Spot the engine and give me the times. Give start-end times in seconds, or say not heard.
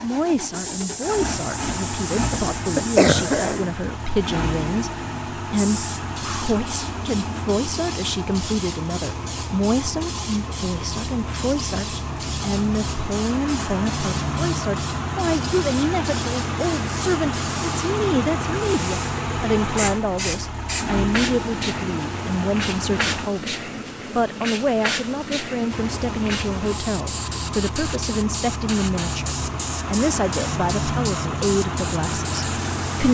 0.0-23.3, 25.7-33.0.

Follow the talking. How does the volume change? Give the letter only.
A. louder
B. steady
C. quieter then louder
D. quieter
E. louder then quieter
B.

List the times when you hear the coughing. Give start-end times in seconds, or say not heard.
2.4-3.7.